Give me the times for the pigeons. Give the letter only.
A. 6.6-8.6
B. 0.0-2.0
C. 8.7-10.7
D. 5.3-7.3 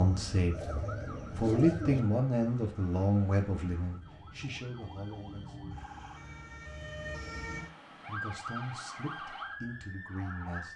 B.